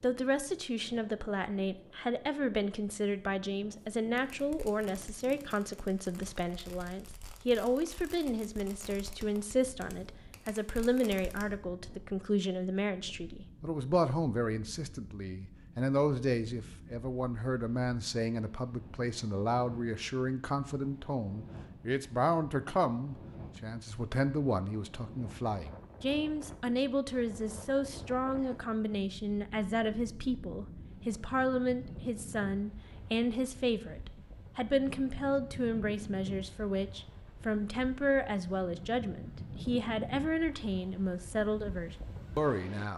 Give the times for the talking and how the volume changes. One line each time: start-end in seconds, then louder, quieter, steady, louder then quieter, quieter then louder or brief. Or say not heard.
0.0-42.9 steady.